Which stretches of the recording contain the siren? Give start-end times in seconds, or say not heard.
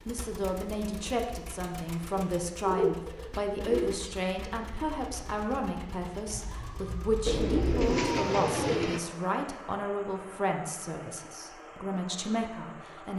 6.3-8.8.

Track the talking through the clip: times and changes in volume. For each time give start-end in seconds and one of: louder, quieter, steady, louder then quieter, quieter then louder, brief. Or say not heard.
0.1-13.1 steady.